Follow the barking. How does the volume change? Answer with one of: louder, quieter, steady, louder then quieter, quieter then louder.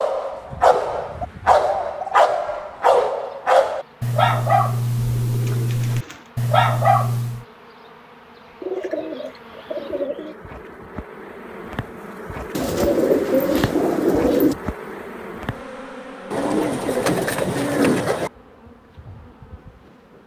steady.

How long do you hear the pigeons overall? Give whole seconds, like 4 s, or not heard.
10 s.